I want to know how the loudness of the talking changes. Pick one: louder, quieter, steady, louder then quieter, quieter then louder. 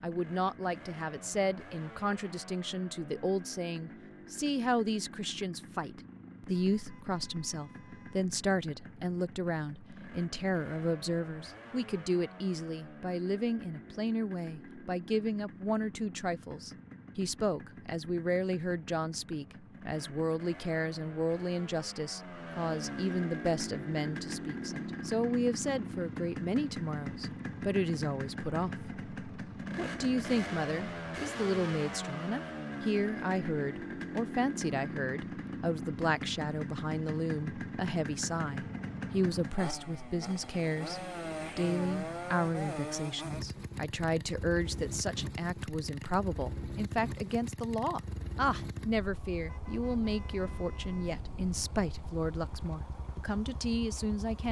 steady.